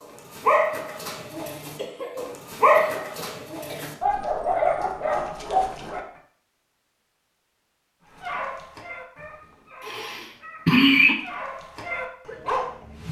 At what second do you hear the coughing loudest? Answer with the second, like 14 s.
11 s.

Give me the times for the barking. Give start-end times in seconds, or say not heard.
0.0-6.0, 8.2-13.0.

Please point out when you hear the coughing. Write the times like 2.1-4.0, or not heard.
1.8-4.0, 9.8-11.2.